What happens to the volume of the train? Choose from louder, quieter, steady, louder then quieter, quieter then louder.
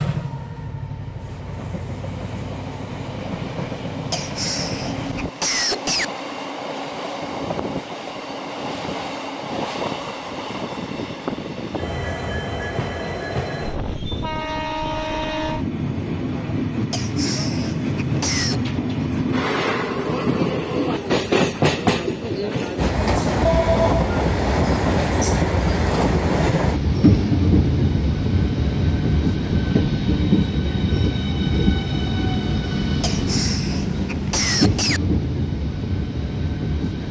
louder.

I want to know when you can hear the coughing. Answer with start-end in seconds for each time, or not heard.
4.1-6.0, 16.9-18.7, 33.0-35.0.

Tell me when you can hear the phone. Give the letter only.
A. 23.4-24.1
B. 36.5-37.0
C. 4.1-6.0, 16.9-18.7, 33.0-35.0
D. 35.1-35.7
A.